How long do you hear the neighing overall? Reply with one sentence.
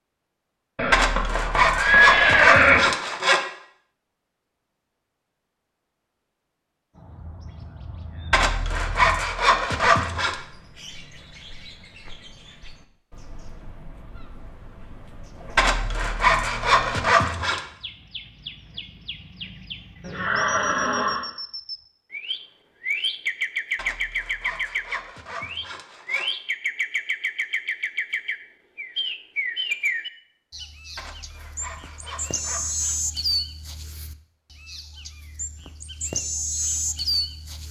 The neighing can be heard for 3 seconds in total.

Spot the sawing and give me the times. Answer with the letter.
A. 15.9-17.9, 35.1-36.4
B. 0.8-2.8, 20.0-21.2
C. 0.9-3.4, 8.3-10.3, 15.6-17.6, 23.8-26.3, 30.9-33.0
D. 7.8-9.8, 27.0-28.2
C.